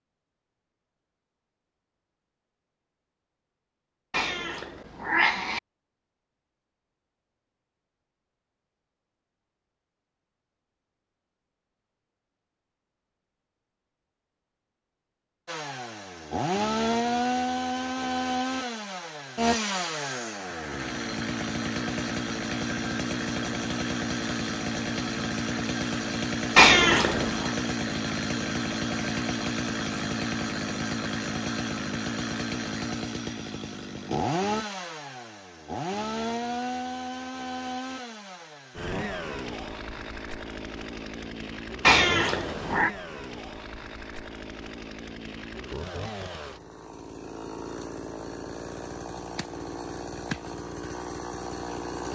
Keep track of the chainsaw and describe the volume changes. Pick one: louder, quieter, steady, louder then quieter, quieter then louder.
quieter.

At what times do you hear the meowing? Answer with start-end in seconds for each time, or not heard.
4.1-5.6, 26.6-27.5, 41.8-42.9.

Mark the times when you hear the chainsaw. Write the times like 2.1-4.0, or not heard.
15.4-52.0.